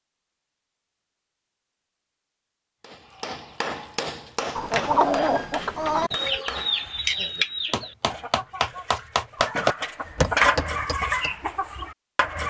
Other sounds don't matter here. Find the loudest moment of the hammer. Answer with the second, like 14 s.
10 s.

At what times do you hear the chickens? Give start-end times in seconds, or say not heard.
4.5-12.4.